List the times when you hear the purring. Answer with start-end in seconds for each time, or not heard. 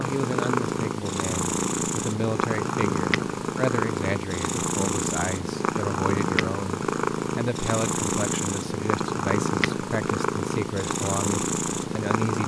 0.0-12.4.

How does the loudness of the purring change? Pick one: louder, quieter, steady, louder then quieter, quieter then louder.
steady.